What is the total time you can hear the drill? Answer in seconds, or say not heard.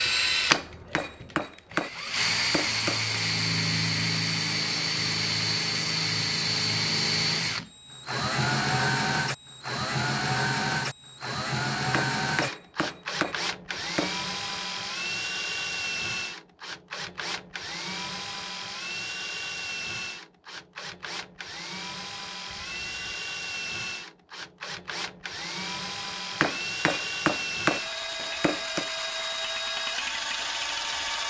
31 s.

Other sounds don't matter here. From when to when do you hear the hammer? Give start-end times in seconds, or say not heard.
0.5-3.1, 11.9-14.2, 26.4-28.9.